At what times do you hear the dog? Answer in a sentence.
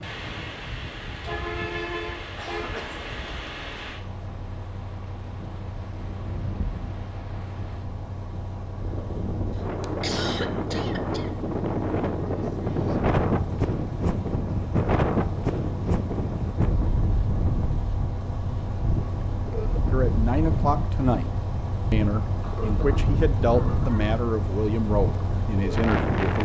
You can't hear the dog here.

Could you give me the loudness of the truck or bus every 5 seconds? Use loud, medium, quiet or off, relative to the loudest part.
loud, medium, medium, loud, loud, loud.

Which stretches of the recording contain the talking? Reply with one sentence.
The talking can be heard from 19.9 to 21.3 s and from 21.9 to 26.4 s.